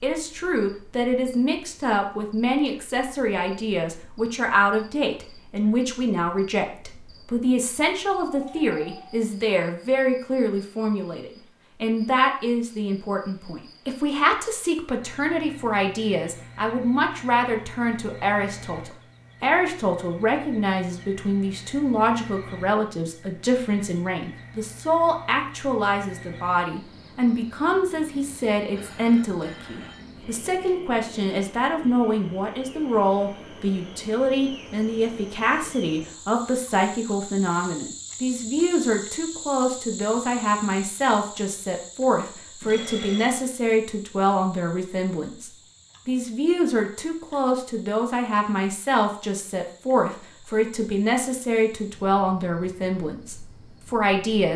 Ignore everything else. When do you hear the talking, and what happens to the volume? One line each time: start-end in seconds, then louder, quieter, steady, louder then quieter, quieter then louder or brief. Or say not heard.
0.0-54.5 steady.